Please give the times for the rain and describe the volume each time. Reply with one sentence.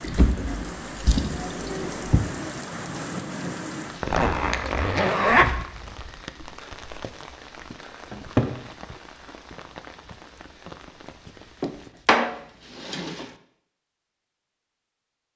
The rain can be heard from 0.0 to 11.9 s, getting quieter.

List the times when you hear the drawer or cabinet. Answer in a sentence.
You can hear the drawer or cabinet from 0.0 to 2.2 s, from 8.1 to 8.6 s and from 11.6 to 13.2 s.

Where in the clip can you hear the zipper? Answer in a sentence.
The zipper can be heard from 4.0 to 5.5 s.